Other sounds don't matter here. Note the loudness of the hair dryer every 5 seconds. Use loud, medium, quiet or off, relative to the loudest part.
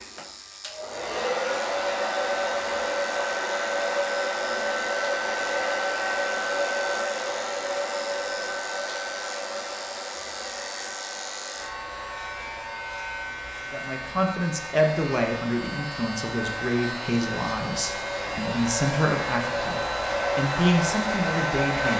loud, loud, quiet, medium, loud.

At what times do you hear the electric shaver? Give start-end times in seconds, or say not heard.
0.0-21.9.